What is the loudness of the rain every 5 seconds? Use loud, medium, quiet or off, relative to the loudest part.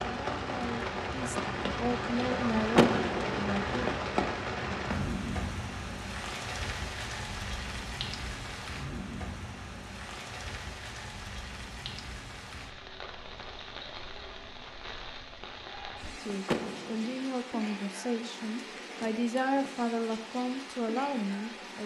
loud, medium, medium, medium, medium.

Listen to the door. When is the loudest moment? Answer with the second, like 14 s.
3 s.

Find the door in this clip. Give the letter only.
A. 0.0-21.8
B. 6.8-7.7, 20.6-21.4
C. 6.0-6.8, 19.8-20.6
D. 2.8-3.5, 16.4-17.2
D.